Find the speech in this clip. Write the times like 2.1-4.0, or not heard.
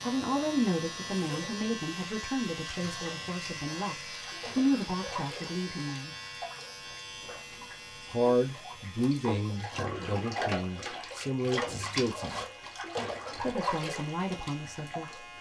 0.0-6.2, 8.1-12.4, 13.3-15.2.